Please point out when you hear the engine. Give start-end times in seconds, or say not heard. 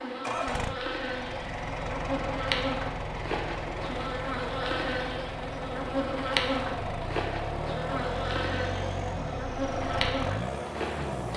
0.2-11.3.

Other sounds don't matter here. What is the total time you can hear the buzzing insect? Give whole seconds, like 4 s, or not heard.
11 s.